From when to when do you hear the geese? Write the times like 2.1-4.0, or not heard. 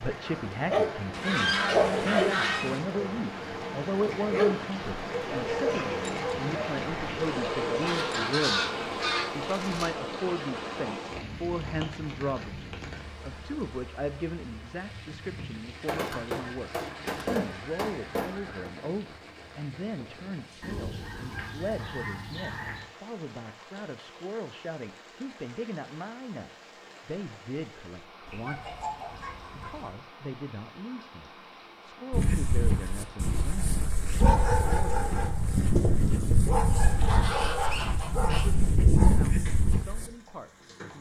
1.1-2.8, 7.8-9.8, 15.8-18.7, 20.6-22.9, 28.2-29.9, 36.8-38.5.